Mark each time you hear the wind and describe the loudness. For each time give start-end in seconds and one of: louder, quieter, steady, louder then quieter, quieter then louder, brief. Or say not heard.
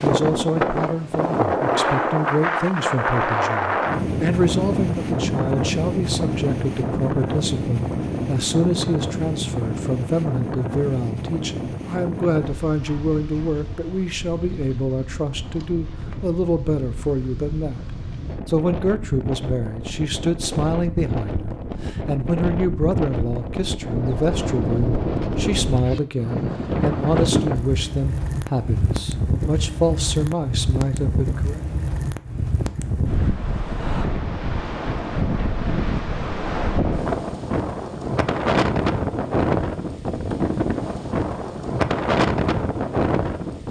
0.0-43.6 quieter then louder.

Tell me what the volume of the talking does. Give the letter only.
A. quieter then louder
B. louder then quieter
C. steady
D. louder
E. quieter
C.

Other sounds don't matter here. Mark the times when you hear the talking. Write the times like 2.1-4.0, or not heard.
0.0-17.9, 18.4-31.6.